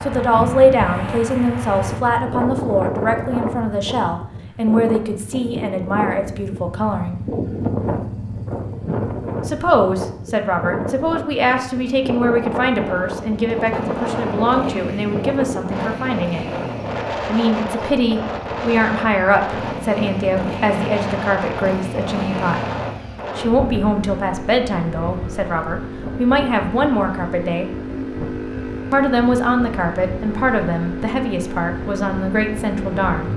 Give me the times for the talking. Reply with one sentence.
You can hear the talking from 0.0 to 7.2 s, from 9.4 to 16.4 s, from 17.2 to 22.6 s, from 23.4 to 27.7 s and from 28.9 to 33.3 s.